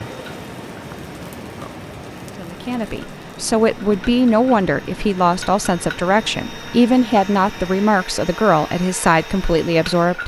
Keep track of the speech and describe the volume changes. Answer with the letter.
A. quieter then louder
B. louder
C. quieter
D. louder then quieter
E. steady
E.